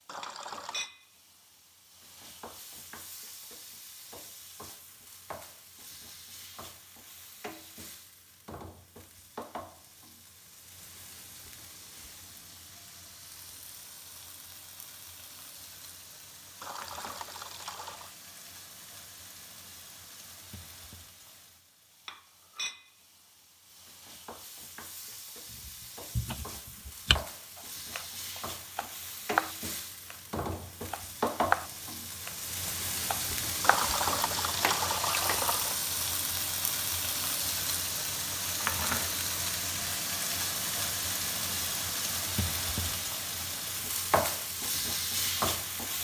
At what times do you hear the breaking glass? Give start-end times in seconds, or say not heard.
not heard.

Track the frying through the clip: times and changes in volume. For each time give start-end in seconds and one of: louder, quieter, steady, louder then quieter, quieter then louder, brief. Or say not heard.
0.0-46.0 louder.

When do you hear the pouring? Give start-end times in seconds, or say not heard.
0.1-0.9, 16.6-18.1, 33.6-35.8.